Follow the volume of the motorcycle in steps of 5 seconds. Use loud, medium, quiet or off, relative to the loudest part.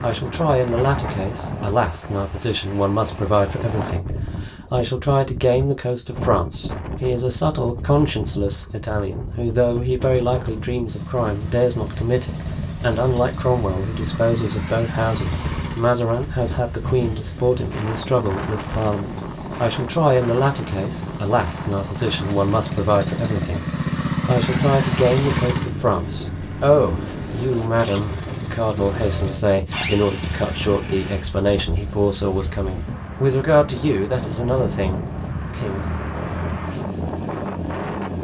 off, off, medium, medium, loud, loud, medium, medium.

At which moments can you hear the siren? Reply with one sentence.
The siren can't be heard in this clip.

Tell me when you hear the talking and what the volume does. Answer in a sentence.
The talking can be heard from 0.0 to 35.9 s, at a steady volume.